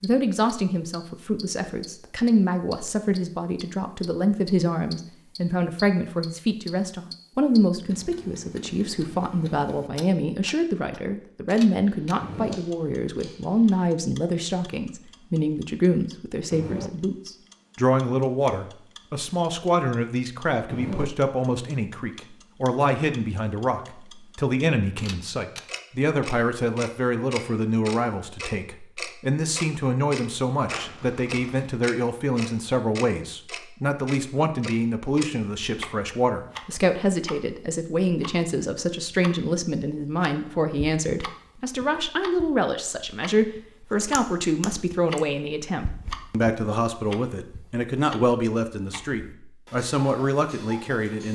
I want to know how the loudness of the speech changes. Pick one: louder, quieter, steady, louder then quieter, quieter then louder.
steady.